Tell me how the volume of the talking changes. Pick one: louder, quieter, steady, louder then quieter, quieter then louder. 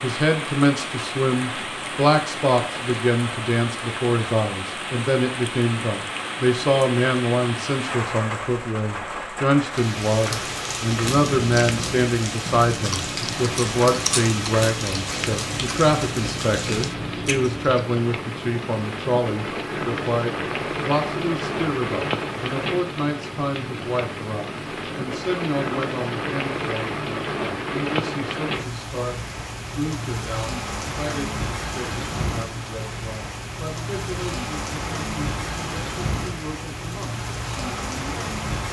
quieter.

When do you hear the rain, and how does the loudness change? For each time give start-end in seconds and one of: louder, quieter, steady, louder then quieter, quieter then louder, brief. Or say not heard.
0.0-38.6 steady.